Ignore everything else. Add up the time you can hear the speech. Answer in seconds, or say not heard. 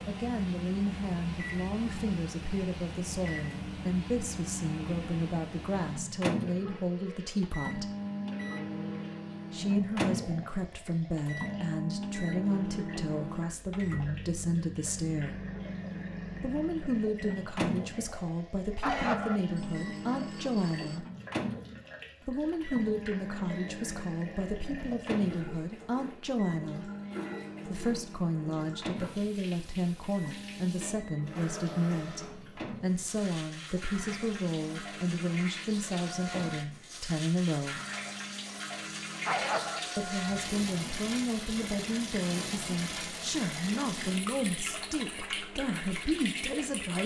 40 s.